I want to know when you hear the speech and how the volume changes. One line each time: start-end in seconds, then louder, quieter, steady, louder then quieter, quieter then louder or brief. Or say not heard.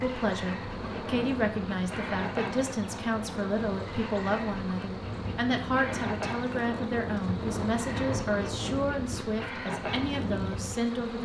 0.0-11.2 steady.